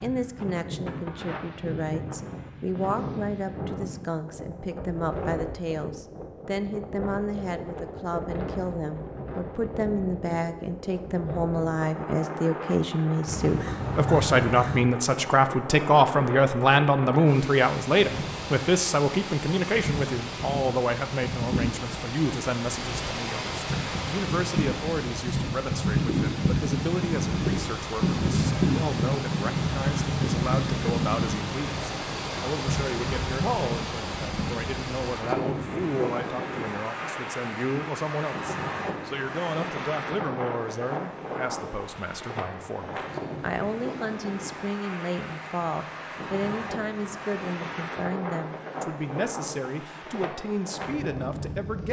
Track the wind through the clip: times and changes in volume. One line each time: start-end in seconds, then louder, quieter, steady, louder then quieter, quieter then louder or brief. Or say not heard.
0.0-51.8 louder then quieter.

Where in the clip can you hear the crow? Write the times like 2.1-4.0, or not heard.
13.2-14.8.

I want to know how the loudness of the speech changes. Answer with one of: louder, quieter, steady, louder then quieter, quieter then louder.
louder then quieter.